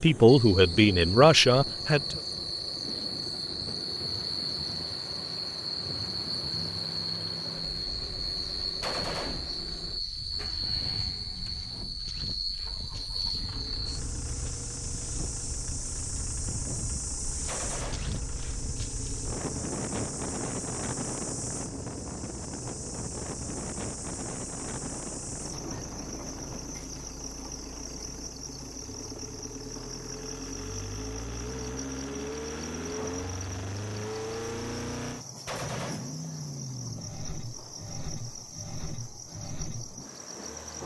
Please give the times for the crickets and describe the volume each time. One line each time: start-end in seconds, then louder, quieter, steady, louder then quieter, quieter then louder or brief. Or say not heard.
0.0-40.8 quieter.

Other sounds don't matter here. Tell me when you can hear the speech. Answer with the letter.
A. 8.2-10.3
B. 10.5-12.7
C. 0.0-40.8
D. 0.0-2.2
D.